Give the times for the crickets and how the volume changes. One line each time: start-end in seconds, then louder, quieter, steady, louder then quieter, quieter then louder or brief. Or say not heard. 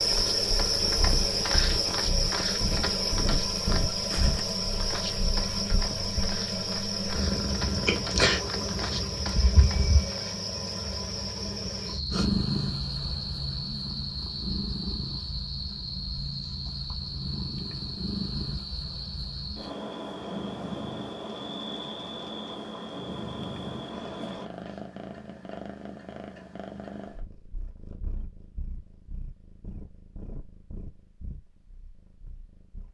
0.0-24.5 quieter.